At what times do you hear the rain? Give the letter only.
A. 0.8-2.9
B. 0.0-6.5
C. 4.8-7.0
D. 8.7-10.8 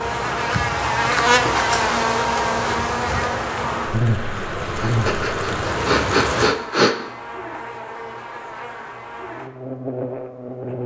B.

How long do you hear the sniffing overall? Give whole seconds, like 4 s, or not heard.
2 s.